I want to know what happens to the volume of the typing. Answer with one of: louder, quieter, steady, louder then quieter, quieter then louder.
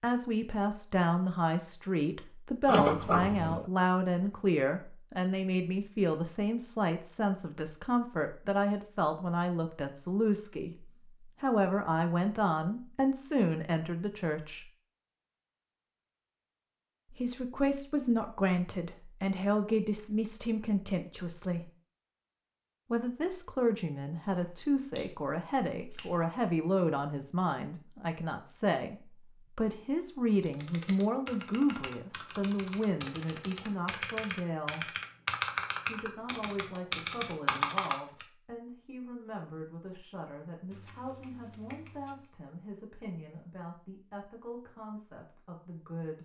louder.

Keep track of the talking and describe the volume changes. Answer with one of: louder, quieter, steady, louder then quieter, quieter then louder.
quieter.